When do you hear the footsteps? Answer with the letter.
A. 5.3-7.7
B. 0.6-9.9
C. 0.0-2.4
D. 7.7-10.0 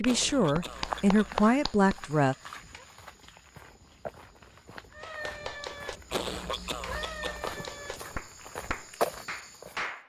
B.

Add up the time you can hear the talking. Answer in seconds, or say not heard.
2 s.